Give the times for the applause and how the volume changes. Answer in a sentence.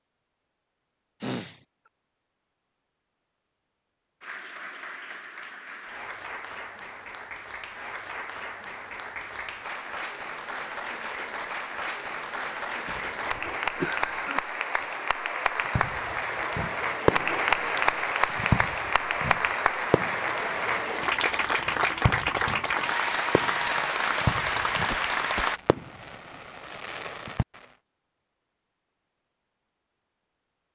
The applause can be heard from 4.2 to 25.6 s, getting louder.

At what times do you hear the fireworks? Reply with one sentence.
You can hear the fireworks from 15.8 to 27.6 s.